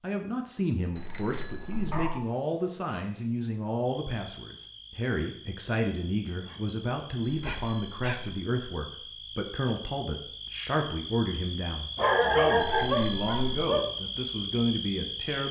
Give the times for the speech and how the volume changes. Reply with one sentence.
The speech can be heard from 0.0 to 15.4 s, at a steady volume.